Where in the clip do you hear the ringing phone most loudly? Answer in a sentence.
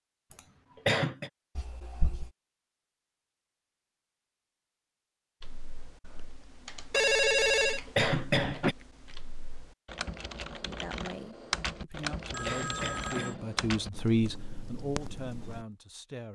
The volume of the ringing phone peaks at 7 seconds.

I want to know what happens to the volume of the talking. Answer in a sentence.
The loudness of the talking goes up, then down.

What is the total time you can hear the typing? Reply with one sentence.
You can hear the typing for 10 seconds altogether.